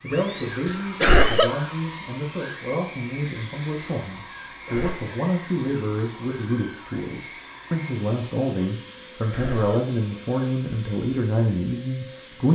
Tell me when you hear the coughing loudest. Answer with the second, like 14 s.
1 s.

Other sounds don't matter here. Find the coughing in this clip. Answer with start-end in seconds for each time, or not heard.
1.0-1.5, 4.3-5.1, 9.3-10.9.